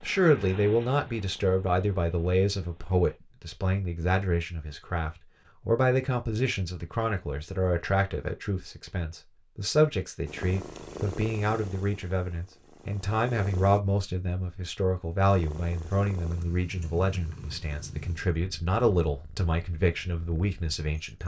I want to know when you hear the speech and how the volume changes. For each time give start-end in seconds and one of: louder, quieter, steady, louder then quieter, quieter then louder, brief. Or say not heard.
0.0-21.2 steady.